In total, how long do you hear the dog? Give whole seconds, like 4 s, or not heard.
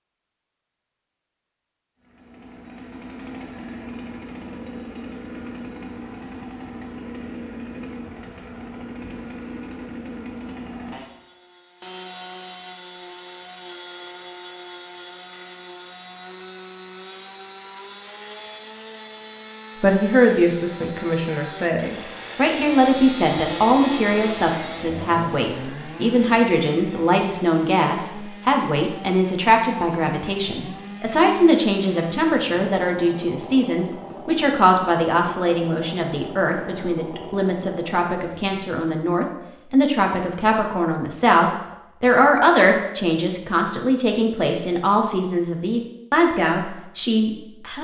not heard.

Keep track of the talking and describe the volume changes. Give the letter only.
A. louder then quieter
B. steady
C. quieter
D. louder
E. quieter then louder
B.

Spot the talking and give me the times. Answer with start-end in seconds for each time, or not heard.
19.8-47.7.